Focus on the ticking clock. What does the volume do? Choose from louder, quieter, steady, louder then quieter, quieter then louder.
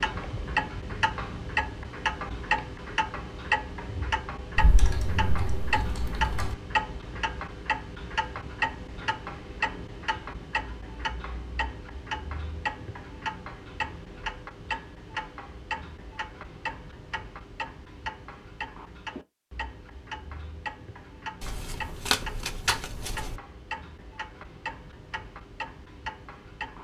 quieter.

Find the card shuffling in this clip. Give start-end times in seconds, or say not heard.
21.4-23.4.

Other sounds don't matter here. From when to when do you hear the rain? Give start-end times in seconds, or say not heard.
not heard.